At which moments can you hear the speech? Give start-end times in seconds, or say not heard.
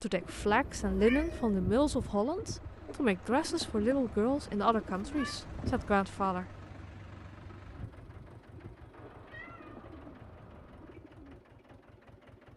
0.0-6.5.